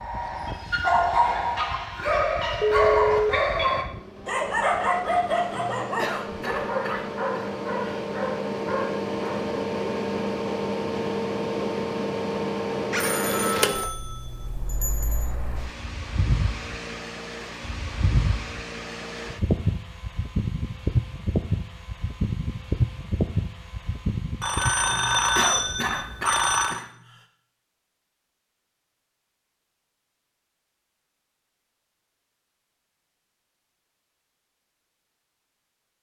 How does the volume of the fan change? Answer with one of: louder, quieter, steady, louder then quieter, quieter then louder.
louder.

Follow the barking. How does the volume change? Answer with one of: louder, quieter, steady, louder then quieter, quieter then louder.
quieter.